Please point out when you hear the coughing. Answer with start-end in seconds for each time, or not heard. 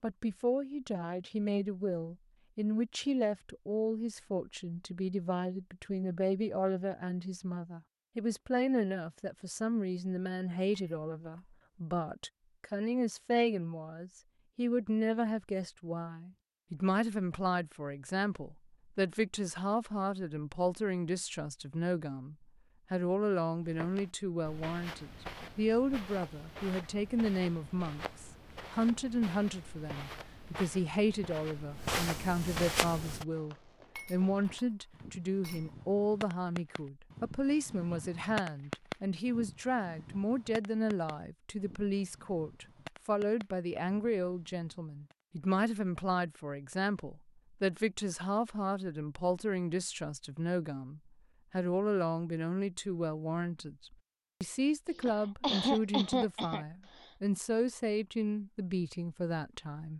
54.9-56.6.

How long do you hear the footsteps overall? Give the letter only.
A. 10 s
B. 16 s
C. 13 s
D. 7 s
A.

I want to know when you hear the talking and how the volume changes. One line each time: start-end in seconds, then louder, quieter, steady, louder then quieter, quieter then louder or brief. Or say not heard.
0.0-59.9 steady.